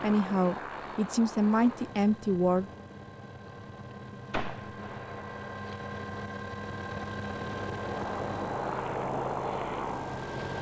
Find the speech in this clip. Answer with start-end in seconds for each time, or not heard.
0.0-2.7.